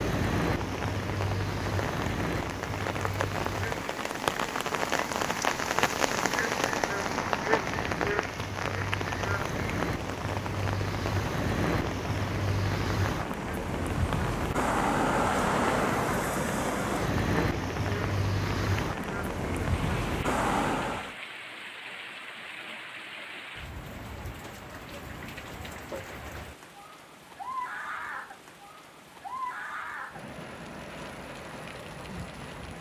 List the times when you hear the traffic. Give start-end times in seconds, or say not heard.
0.0-21.1.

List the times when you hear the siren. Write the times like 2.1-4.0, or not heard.
not heard.